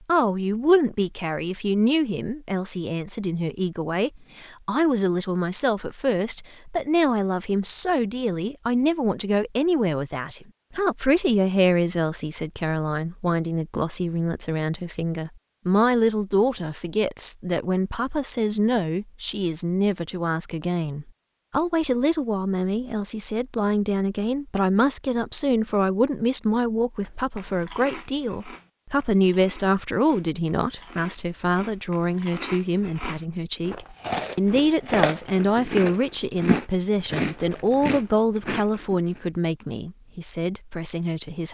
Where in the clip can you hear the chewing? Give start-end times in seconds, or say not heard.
27.0-39.3.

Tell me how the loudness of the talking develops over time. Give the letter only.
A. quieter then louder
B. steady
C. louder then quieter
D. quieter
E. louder
B.